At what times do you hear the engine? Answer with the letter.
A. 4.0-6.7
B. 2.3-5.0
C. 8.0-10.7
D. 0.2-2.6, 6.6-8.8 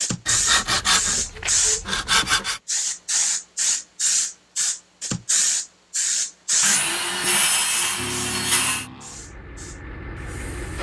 C.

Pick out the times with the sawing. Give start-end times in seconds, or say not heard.
0.2-2.6, 6.6-8.8.